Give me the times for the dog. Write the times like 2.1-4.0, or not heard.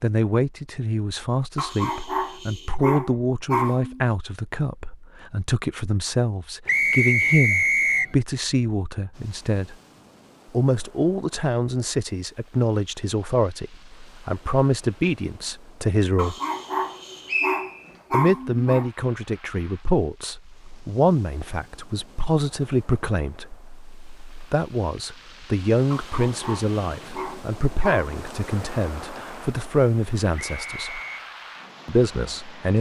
1.6-4.0, 16.1-18.9, 25.9-28.1.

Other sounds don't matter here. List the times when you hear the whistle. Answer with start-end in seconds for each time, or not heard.
6.7-8.2, 17.2-17.9, 30.4-31.2.